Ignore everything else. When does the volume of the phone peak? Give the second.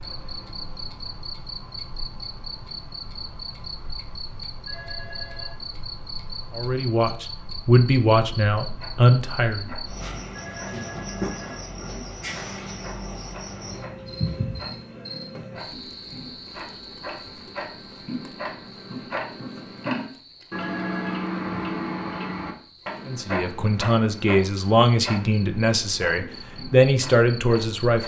21 s.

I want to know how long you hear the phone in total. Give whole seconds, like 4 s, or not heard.
3 s.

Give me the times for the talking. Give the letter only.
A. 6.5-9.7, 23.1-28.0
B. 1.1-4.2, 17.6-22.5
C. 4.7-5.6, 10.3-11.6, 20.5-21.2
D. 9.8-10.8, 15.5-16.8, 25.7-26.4
A.